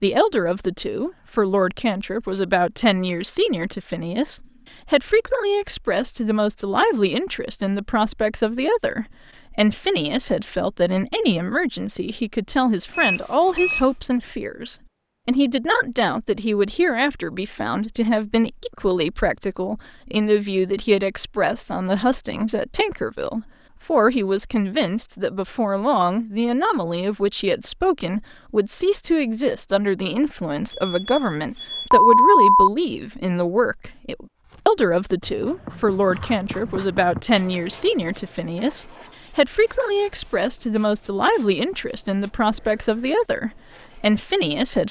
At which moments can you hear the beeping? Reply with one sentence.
The beeping can be heard from 12.9 to 13.8 s and from 30.7 to 32.7 s.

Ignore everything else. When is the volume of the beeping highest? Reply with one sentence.
The volume of the beeping peaks at 32 seconds.